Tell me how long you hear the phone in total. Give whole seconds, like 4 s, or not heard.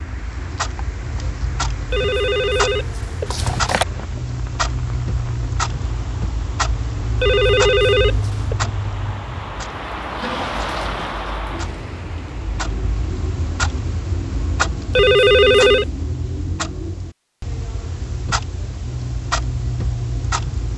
4 s.